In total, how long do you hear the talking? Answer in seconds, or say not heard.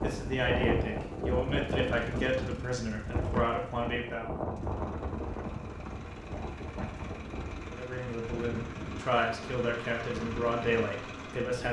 8 s.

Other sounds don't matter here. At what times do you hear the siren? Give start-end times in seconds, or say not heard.
not heard.